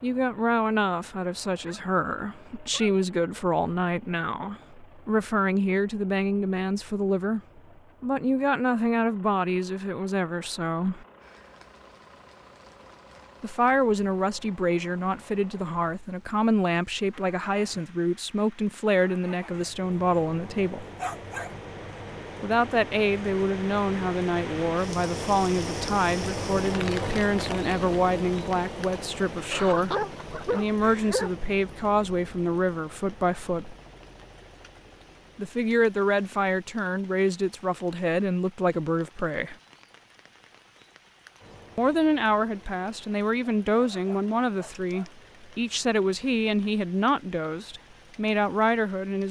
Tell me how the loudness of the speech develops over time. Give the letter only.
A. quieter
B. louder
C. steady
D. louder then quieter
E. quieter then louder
C.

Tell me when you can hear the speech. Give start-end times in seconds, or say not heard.
0.0-7.4, 8.0-11.1, 13.4-20.9, 22.4-33.8, 35.4-39.5, 41.8-49.2.